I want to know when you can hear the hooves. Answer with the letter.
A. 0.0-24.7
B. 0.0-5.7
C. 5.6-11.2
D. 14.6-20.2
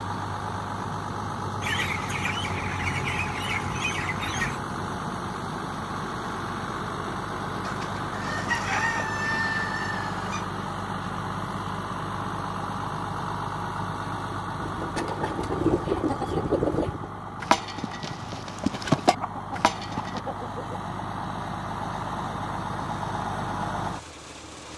D.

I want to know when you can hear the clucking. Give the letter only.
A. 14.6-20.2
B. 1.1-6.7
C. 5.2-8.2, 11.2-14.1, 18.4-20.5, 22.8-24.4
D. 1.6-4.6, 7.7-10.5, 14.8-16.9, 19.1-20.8
D.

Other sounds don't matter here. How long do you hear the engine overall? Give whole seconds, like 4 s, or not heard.
25 s.